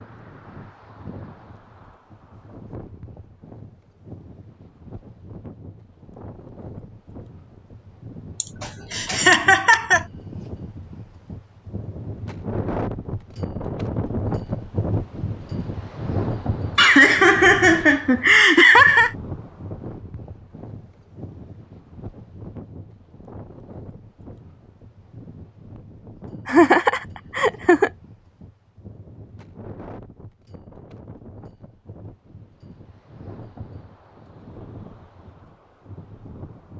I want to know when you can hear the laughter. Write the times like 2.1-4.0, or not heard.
8.4-10.1, 16.8-19.1, 26.4-27.9.